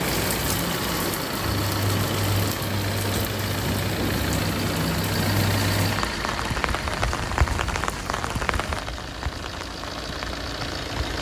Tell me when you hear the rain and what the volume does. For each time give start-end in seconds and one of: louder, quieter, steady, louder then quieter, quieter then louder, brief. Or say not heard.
0.0-11.1 quieter.